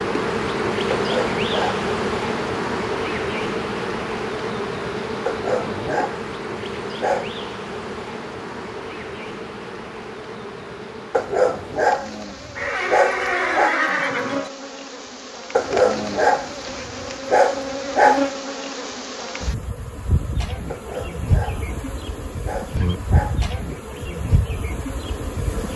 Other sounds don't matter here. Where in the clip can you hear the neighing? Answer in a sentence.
The neighing can be heard from 12.6 to 14.5 s.